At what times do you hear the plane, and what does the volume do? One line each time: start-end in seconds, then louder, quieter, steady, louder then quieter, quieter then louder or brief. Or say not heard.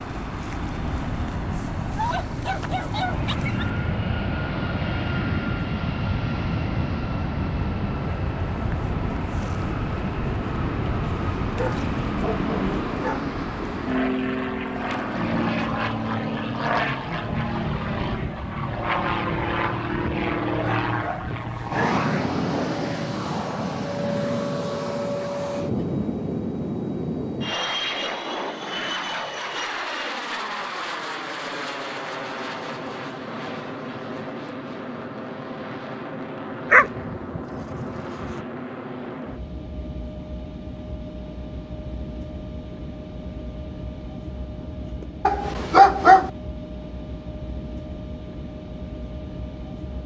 0.0-50.0 quieter.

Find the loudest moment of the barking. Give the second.
46 s.